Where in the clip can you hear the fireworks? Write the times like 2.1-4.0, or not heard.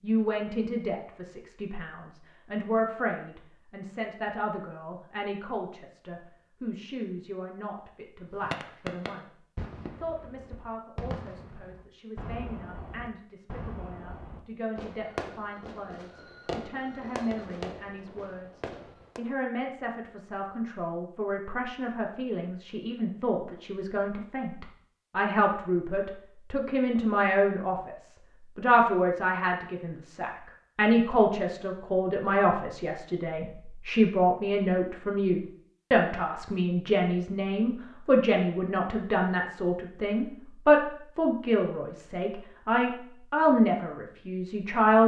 8.3-19.2.